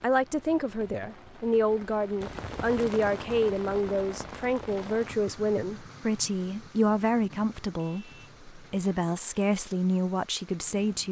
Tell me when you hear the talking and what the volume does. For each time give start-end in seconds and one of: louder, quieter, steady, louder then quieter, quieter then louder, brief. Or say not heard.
0.0-11.0 steady.